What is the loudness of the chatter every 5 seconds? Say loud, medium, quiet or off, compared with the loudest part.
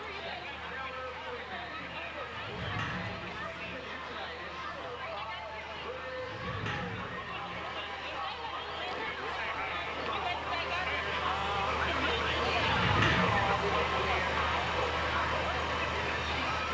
medium, medium, loud, loud.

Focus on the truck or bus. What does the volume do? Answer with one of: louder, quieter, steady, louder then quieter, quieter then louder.
louder.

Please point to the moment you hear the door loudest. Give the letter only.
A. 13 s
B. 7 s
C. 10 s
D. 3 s
A.